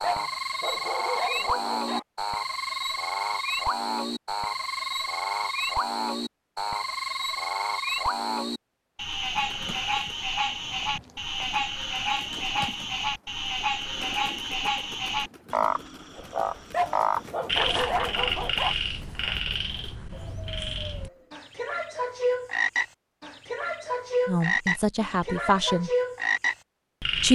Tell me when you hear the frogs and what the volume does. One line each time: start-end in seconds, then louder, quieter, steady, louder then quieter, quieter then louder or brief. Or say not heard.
0.0-27.3 steady.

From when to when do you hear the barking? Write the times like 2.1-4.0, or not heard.
0.0-2.0, 16.7-18.8.